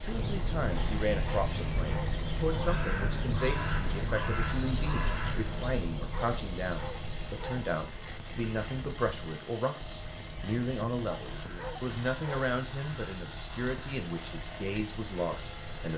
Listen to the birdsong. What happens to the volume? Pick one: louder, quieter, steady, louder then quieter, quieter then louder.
quieter.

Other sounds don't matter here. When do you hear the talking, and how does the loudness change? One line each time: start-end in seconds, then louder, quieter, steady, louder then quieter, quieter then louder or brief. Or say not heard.
0.0-15.9 steady.